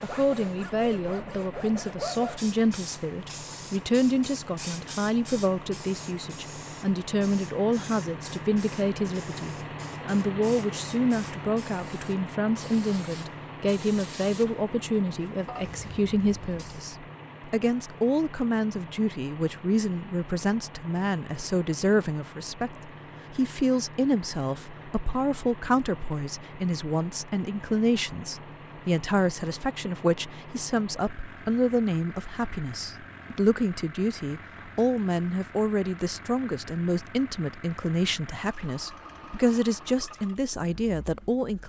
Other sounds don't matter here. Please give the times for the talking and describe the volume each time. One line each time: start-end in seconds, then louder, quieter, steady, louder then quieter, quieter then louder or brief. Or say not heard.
0.0-41.6 steady.